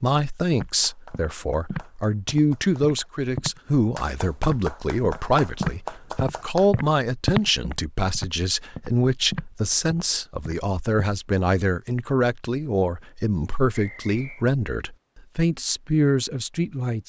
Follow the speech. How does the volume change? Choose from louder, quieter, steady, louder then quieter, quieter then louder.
steady.